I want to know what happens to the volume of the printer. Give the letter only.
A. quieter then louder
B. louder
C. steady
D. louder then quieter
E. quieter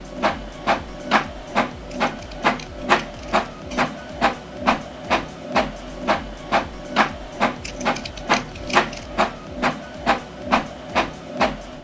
C.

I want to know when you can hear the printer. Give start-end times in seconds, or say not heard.
0.0-11.8.